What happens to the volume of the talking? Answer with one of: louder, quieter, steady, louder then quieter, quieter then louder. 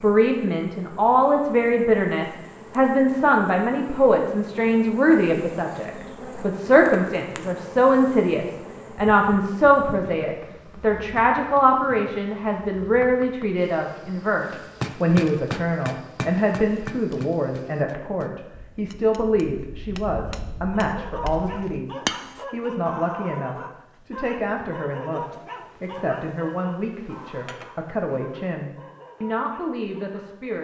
quieter.